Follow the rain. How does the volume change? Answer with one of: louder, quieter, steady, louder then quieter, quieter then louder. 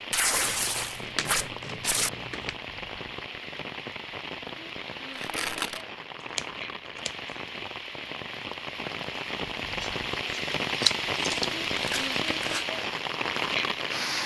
louder.